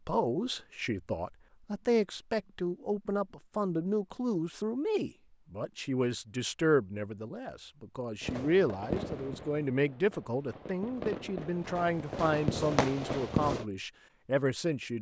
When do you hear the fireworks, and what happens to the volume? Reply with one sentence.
The fireworks can be heard from 8.2 to 13.7 s, getting quieter then louder.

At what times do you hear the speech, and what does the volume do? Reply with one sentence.
You can hear the speech from 0.1 to 14.9 s, at a steady volume.